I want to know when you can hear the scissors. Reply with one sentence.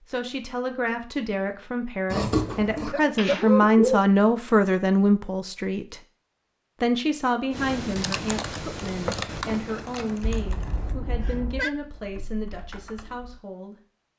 You can hear the scissors from 2.1 to 3.0 s and from 9.1 to 10.1 s.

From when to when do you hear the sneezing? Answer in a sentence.
The sneezing can be heard from 2.5 to 4.0 s and from 10.2 to 11.7 s.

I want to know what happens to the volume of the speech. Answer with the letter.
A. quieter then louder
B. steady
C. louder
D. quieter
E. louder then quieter
E.